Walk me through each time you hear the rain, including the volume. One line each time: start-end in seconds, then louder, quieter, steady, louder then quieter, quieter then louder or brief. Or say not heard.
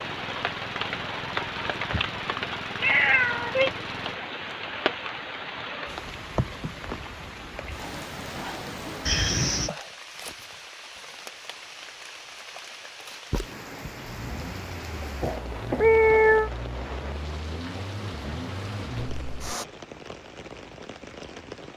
0.0-21.7 quieter.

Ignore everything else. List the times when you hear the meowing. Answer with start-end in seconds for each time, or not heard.
2.8-3.7, 9.1-9.7, 15.0-16.5.